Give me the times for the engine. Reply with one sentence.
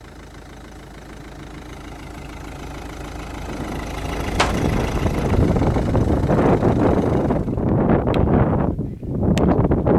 The engine can be heard from 0.0 to 7.7 s.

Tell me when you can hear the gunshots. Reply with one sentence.
You can hear the gunshots from 3.5 to 5.5 s.